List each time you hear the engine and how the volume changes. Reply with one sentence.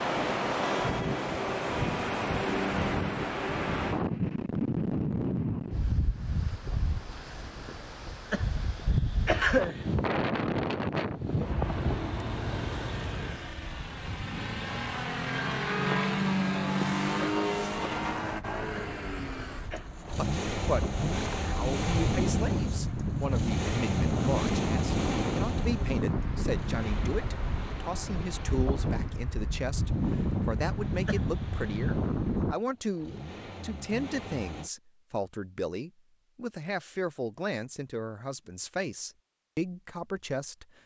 The engine can be heard from 11.6 to 34.7 s, getting quieter.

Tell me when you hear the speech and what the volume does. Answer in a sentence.
The speech can be heard from 20.1 to 40.6 s, at a steady volume.